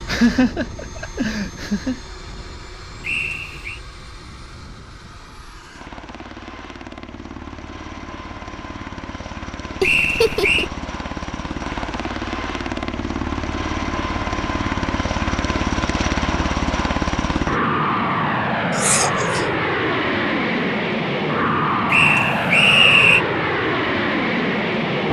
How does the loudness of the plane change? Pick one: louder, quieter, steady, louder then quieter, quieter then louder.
louder.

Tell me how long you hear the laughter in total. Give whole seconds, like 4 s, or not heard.
4 s.